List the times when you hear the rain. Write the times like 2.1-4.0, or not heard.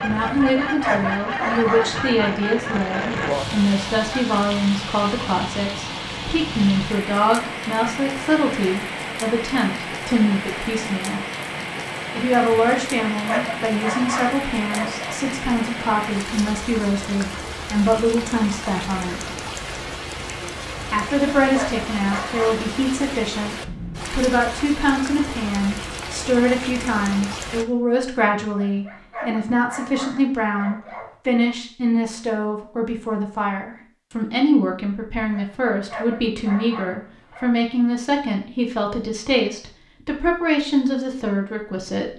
0.0-27.6.